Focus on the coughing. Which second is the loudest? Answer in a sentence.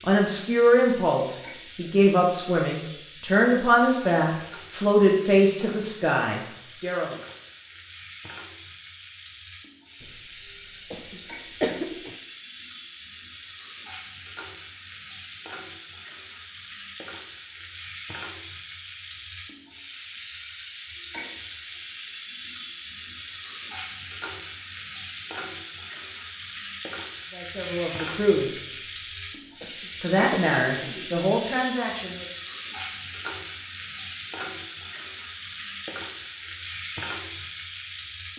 The volume of the coughing peaks at 12 seconds.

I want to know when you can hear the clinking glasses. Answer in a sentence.
You can't hear the clinking glasses here.